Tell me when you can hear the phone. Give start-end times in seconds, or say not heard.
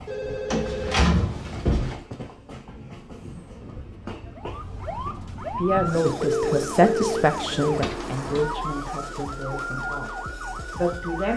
0.1-1.6, 6.2-7.8.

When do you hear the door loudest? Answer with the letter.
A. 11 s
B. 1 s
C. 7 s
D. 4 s
B.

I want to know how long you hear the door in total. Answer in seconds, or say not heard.
2 s.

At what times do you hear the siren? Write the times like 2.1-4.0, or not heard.
4.3-11.3.